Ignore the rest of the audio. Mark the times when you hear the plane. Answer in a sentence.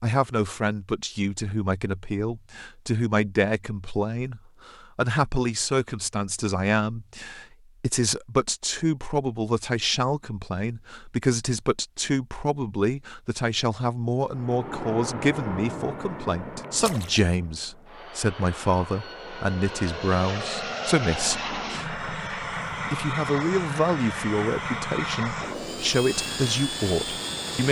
You can hear the plane from 14.3 to 27.6 s.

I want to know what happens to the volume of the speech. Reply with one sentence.
The volume of the speech stays about the same.